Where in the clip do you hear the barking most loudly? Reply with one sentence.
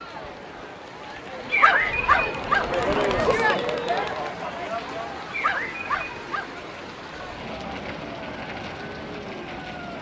The loudest moment of the barking is at 2 seconds.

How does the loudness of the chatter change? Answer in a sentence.
The volume of the chatter goes up, then down.